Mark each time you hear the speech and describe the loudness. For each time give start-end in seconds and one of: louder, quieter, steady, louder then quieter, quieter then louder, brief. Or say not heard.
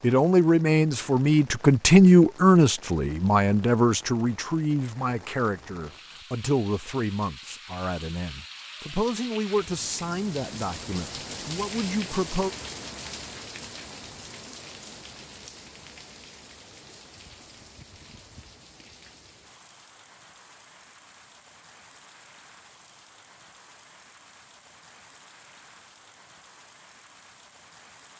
0.0-12.5 quieter.